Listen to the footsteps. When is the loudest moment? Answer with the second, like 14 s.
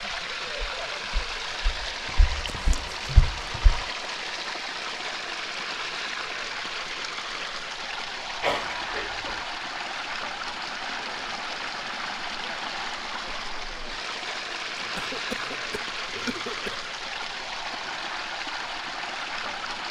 3 s.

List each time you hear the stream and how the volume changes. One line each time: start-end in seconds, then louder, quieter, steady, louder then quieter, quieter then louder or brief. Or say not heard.
0.0-19.8 steady.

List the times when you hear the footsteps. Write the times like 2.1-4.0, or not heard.
0.0-3.8.